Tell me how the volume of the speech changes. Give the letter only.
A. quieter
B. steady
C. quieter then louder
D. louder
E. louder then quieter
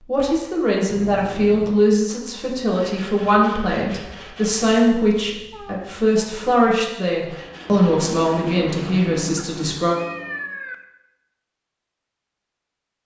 B.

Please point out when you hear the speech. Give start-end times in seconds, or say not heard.
0.1-9.9.